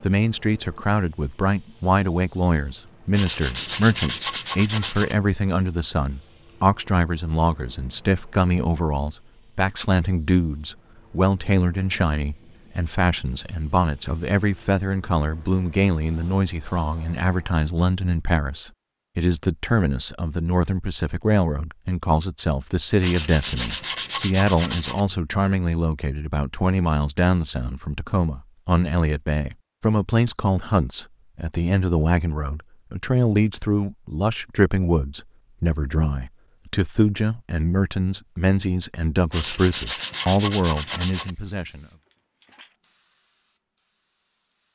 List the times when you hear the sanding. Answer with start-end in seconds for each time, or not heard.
3.1-5.2, 23.0-25.1, 39.3-41.4.